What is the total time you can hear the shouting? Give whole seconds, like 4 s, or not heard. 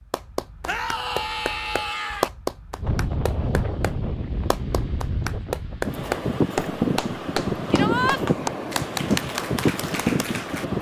2 s.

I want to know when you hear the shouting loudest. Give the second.
8 s.